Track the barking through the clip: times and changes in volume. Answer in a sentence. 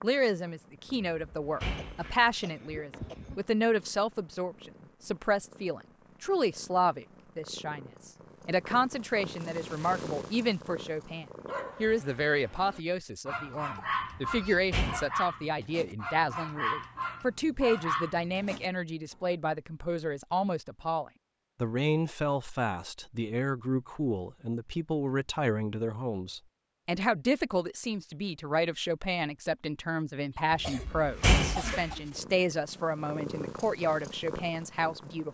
The barking can be heard from 11.4 to 18.7 s, getting louder.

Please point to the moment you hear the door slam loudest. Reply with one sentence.
The loudest moment of the door slam is at 31 seconds.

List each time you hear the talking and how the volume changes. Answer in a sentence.
You can hear the talking from 0.0 to 35.2 s, at a steady volume.